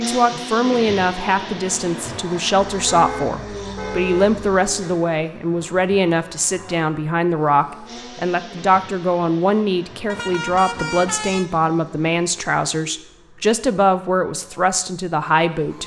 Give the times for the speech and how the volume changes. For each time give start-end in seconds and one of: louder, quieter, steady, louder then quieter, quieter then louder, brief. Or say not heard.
0.0-15.8 steady.